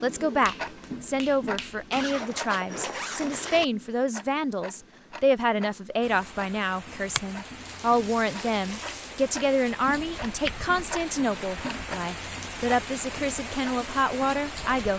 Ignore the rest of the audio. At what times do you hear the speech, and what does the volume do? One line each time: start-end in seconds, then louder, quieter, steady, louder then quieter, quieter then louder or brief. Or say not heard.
0.0-14.9 steady.